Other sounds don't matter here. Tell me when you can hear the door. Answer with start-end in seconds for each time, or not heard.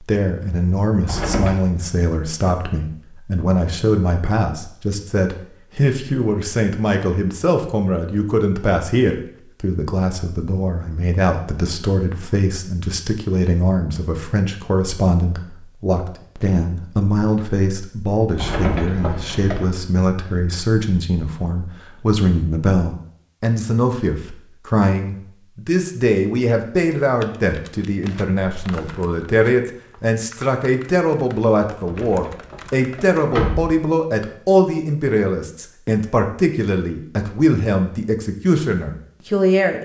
1.0-1.6, 18.3-19.6, 31.8-33.7.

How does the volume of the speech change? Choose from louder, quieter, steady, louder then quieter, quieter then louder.
steady.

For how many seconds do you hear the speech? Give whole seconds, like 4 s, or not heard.
40 s.